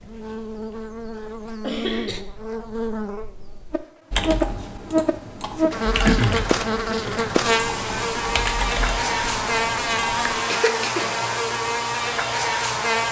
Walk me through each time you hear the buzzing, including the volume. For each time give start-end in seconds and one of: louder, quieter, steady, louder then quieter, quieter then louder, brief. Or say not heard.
0.0-13.0 louder.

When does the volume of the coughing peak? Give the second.
6 s.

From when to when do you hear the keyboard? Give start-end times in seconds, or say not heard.
4.1-10.4.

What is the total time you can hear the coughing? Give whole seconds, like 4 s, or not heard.
2 s.